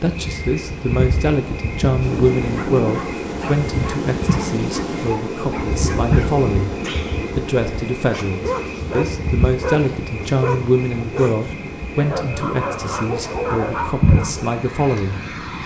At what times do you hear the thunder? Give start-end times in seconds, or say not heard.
2.0-5.2.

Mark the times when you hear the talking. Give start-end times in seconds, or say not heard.
0.0-6.8, 7.3-15.2.